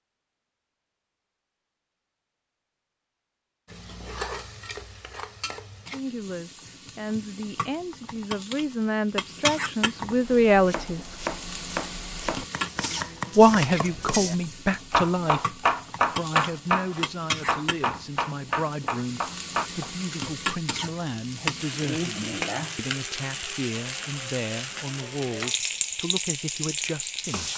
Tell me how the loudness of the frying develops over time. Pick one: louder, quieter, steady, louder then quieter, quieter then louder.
louder.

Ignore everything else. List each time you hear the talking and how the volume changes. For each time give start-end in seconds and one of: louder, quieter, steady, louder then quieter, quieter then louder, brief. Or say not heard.
5.9-11.1 louder
13.3-27.5 quieter.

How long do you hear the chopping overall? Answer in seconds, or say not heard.
10 s.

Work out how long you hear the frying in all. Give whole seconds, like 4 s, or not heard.
24 s.